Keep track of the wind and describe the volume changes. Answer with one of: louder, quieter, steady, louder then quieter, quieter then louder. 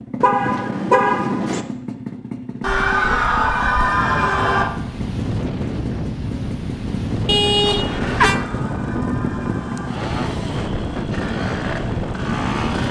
steady.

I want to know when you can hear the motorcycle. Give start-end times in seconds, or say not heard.
0.0-12.8.